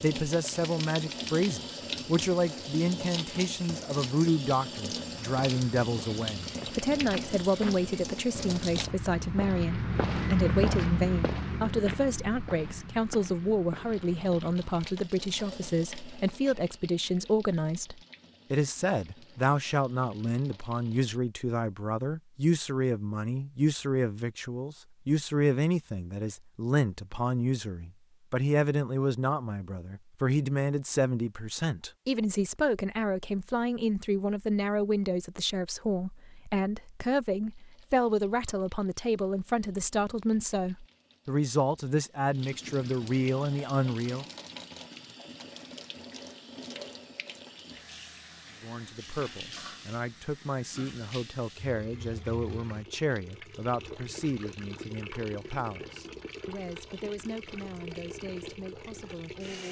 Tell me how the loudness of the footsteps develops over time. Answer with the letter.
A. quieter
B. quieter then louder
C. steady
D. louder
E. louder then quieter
E.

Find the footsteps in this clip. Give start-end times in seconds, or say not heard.
5.0-14.9.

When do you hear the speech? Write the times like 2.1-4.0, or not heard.
0.0-44.2, 48.6-59.6.